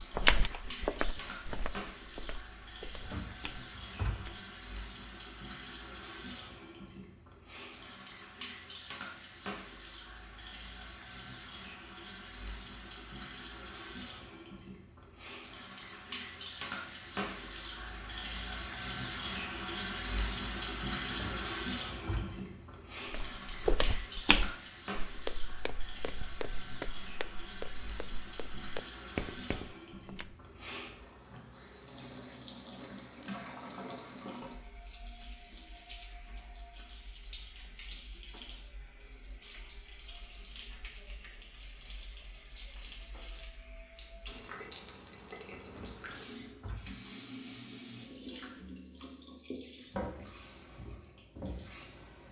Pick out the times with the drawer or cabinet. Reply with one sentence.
The drawer or cabinet can be heard from 3.0 to 4.3 s, from 21.1 to 22.4 s and from 45.6 to 47.0 s.